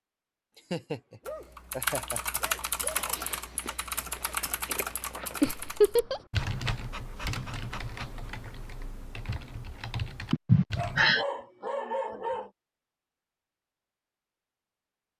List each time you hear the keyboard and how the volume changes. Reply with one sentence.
You can hear the keyboard from 1.2 to 11.1 s, getting quieter.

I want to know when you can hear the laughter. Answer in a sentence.
You can hear the laughter from 0.5 to 2.4 s, from 5.4 to 6.2 s and from 10.3 to 11.2 s.